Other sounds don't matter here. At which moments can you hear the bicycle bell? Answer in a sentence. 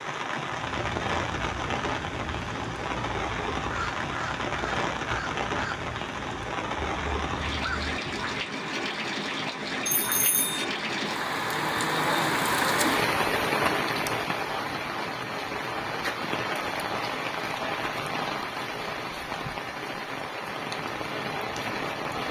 You can hear the bicycle bell from 9.8 to 10.7 s.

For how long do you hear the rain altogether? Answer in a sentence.
The rain can be heard for 22 seconds in total.